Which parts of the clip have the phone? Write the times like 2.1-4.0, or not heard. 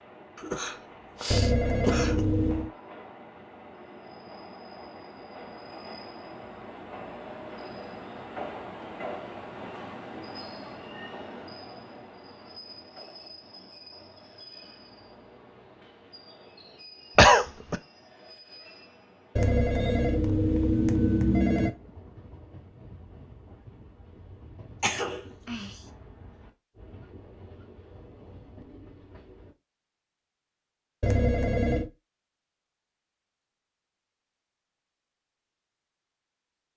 1.3-2.7, 19.4-21.7, 31.0-31.9.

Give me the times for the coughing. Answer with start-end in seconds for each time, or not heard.
0.3-2.2, 17.1-17.8, 24.8-25.8.